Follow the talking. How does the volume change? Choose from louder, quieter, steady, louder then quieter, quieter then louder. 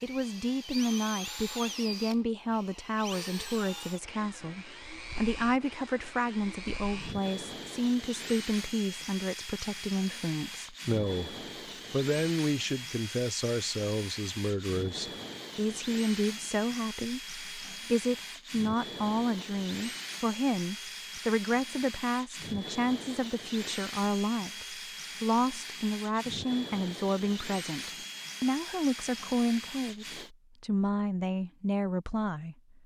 steady.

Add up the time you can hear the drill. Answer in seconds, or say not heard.
30 s.